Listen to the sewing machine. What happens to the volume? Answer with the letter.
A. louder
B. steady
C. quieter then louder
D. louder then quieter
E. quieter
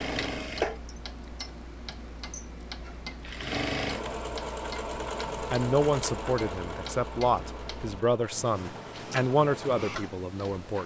E.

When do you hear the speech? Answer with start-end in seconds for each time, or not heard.
5.4-10.8.